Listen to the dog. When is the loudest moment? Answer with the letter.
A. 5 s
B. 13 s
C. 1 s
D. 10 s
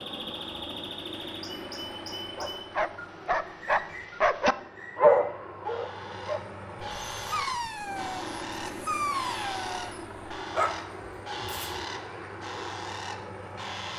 A.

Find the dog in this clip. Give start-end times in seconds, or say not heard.
2.4-11.8.